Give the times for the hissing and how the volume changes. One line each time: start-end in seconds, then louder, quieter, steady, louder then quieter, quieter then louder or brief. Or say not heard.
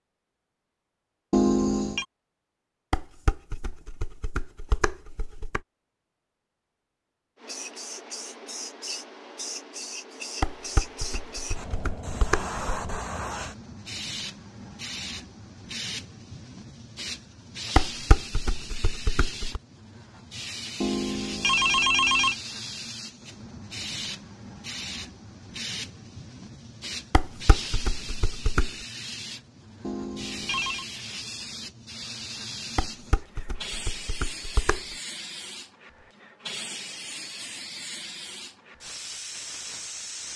7.4-40.3 steady.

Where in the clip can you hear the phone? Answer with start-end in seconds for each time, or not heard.
1.3-2.0, 20.8-22.4, 29.8-30.9.